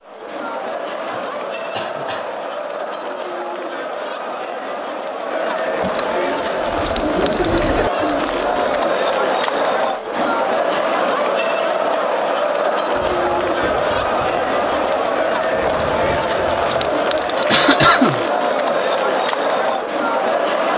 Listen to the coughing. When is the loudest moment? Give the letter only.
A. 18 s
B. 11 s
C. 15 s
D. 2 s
A.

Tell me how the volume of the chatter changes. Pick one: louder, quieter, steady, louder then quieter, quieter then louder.
louder.